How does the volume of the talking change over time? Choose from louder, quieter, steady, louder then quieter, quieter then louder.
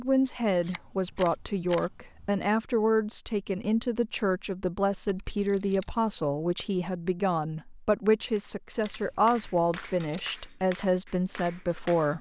steady.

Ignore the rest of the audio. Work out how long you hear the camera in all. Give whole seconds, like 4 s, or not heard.
4 s.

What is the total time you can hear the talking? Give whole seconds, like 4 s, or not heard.
12 s.